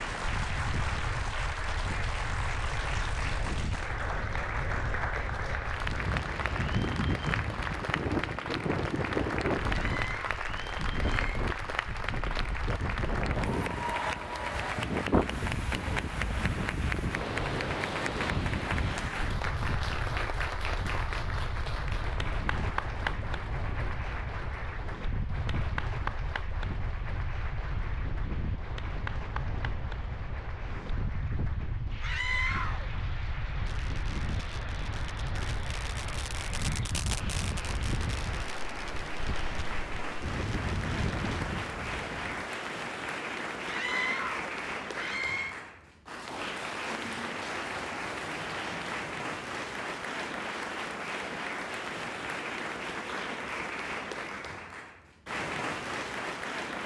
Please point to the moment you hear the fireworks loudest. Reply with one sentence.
The volume of the fireworks peaks at 37 seconds.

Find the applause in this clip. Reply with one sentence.
The applause can be heard from 0.0 to 56.8 s.